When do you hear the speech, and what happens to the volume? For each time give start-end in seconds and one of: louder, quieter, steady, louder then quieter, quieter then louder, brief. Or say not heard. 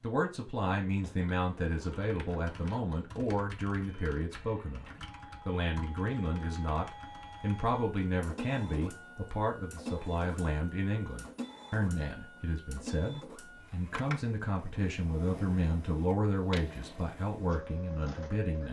0.0-18.6 steady.